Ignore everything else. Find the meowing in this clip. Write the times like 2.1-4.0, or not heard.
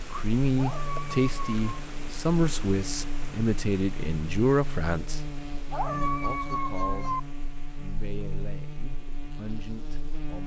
0.6-1.8, 5.7-7.2.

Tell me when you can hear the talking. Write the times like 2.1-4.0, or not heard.
0.1-10.4.